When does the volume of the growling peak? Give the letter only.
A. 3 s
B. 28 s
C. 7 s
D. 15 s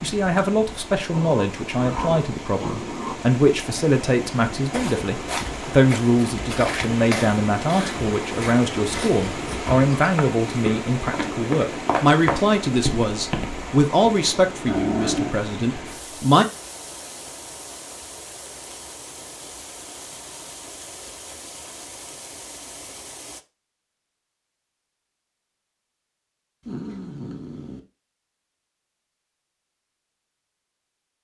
D.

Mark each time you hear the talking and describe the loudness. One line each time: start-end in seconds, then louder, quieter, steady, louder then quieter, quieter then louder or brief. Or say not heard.
0.0-16.4 steady.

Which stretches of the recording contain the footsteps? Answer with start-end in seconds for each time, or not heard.
4.7-13.7.